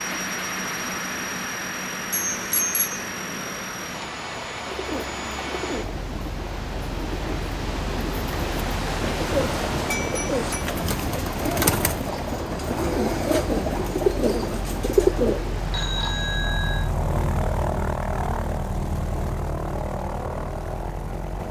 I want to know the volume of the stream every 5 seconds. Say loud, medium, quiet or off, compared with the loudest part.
medium, loud, loud, medium, off.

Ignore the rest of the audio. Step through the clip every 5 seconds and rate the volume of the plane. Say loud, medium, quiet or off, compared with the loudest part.
loud, medium, medium, loud, loud.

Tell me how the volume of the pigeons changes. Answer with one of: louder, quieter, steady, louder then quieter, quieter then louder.
louder.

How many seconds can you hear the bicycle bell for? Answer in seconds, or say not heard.
3 s.